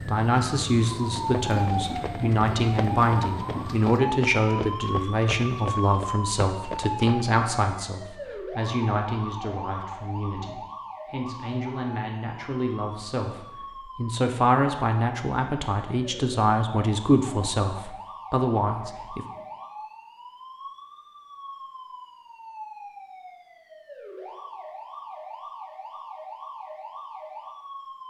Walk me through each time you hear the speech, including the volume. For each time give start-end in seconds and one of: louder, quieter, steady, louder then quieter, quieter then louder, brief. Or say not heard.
0.1-19.2 quieter then louder.